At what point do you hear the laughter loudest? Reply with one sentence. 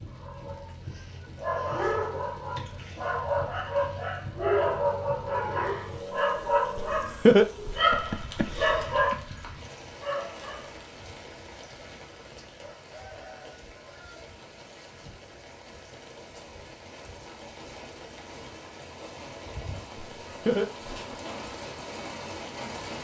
The loudest moment of the laughter is at 7 seconds.